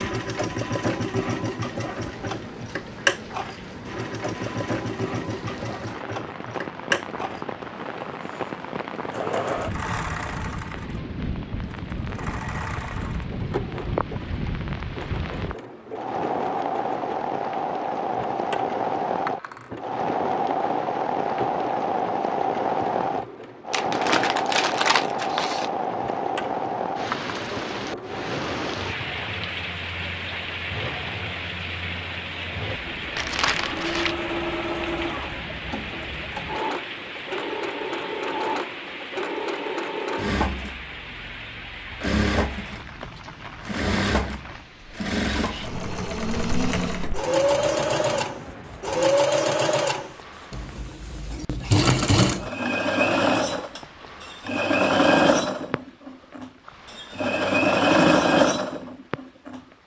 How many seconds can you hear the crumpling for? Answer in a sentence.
You can hear the crumpling for 3 seconds altogether.